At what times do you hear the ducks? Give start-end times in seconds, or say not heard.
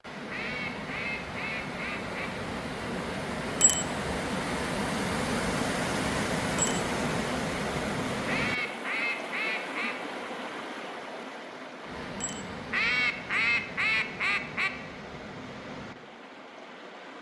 0.3-2.3, 8.2-9.9, 12.7-14.7.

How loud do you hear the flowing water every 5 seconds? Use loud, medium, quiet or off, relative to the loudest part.
loud, loud, medium, quiet.